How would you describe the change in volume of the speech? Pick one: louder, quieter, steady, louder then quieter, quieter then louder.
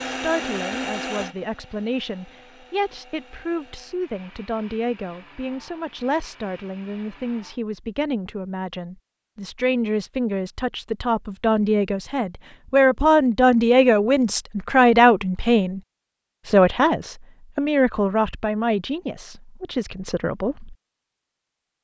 louder then quieter.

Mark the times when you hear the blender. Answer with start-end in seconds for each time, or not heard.
0.0-7.6.